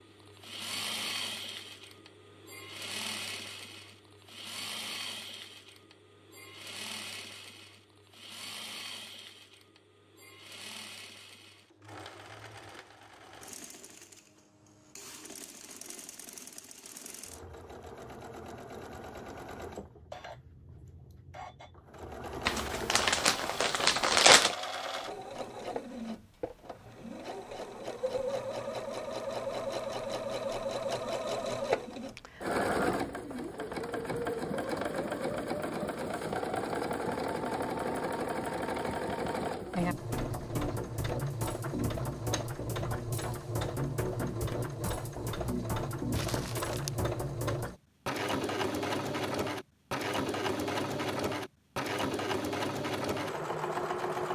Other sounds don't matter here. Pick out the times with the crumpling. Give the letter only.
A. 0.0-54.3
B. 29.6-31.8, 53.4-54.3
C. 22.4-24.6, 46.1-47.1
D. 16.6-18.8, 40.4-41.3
C.